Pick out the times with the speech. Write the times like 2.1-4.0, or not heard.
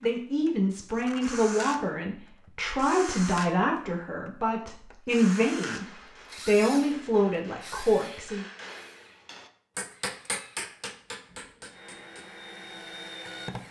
0.0-8.4.